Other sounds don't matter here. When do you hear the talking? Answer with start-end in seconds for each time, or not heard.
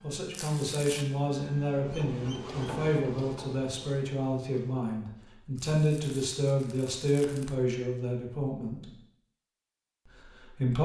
0.0-8.9, 10.1-10.8.